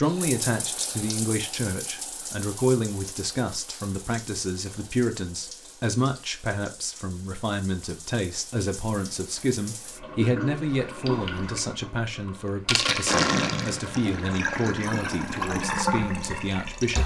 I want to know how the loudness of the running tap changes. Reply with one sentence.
The volume of the running tap goes down, then up.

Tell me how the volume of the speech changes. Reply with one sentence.
The loudness of the speech stays about the same.